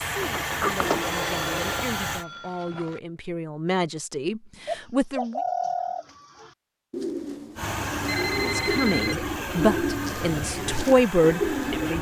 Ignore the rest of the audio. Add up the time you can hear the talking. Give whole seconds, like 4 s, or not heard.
9 s.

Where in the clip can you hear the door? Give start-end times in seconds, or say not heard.
0.2-1.1.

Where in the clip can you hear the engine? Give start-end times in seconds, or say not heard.
0.0-2.2, 7.5-11.9.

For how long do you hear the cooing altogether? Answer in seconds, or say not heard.
7 s.